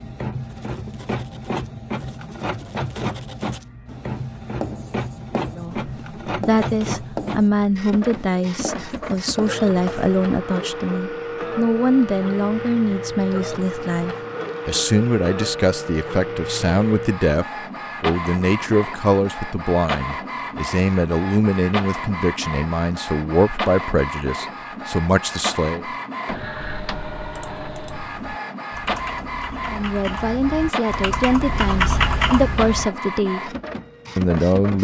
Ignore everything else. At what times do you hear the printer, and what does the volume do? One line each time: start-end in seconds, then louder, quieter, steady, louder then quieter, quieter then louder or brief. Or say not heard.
0.0-34.7 steady.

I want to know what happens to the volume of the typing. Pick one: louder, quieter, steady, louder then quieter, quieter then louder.
louder.